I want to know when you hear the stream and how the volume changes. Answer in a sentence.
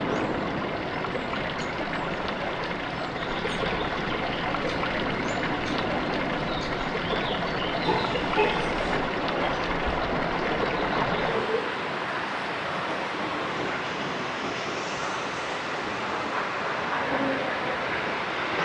The stream can be heard from 0.0 to 18.6 s, at a steady volume.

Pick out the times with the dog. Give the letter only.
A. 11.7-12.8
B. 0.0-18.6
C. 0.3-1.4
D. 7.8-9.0
D.